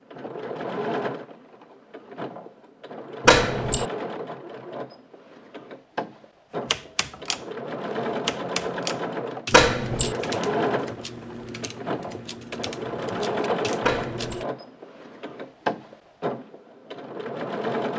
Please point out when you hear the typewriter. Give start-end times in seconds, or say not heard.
6.7-14.4.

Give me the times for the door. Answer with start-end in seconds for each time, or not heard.
3.2-3.9, 9.5-10.2, 13.8-14.4.